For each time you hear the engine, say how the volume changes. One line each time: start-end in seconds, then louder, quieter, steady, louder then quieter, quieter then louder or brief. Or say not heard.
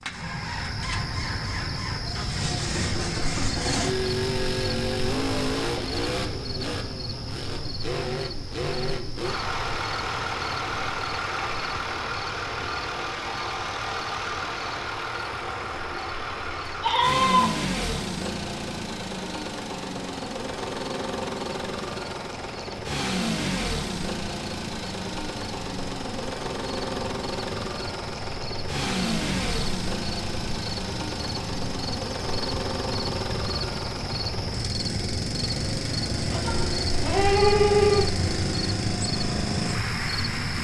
0.0-40.5 steady.